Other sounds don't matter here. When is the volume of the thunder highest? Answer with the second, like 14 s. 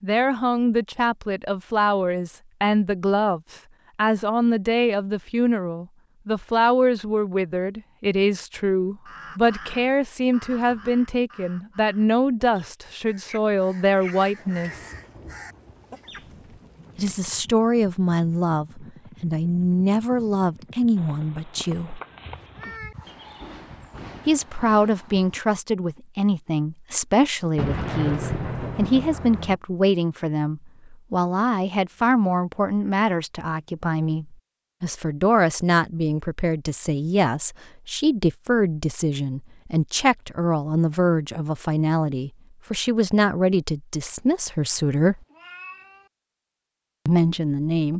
28 s.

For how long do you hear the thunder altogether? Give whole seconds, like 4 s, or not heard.
5 s.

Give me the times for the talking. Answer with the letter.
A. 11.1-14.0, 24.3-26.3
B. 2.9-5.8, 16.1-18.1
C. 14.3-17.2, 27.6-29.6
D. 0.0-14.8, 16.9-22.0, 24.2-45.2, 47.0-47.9
D.